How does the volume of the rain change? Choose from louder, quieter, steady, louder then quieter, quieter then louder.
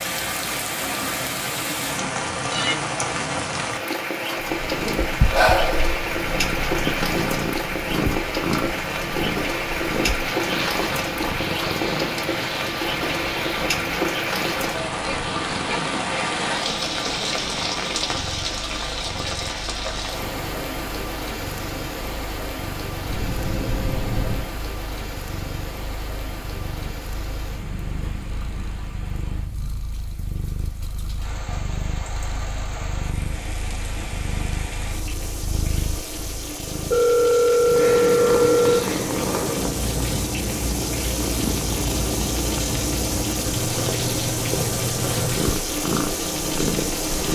quieter then louder.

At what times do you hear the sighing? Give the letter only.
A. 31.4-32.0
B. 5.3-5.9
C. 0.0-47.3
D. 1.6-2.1
B.